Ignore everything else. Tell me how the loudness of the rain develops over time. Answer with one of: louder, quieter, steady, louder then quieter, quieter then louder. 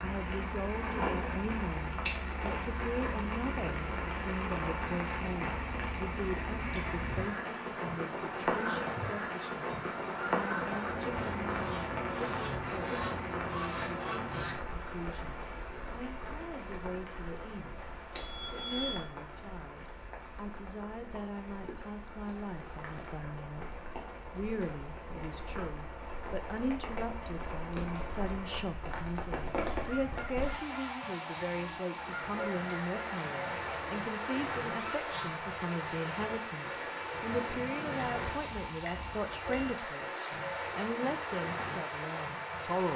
quieter then louder.